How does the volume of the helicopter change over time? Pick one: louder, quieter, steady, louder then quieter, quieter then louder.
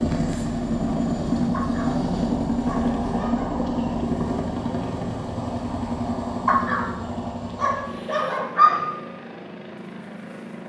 quieter.